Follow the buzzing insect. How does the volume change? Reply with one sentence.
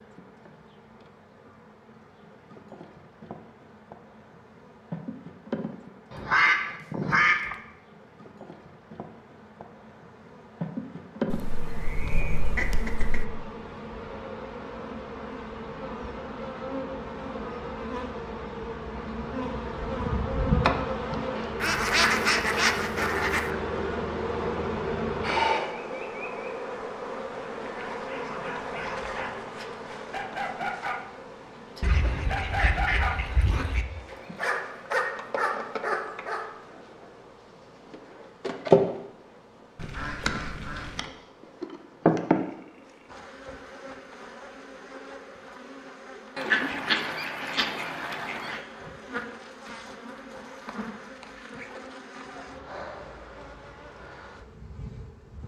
The loudness of the buzzing insect goes up, then down.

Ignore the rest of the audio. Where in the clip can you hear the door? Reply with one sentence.
You can't hear the door here.